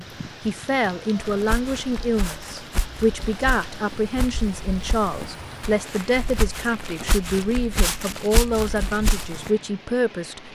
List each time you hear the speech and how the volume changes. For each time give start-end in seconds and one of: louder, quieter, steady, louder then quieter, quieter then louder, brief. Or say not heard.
0.0-10.4 steady.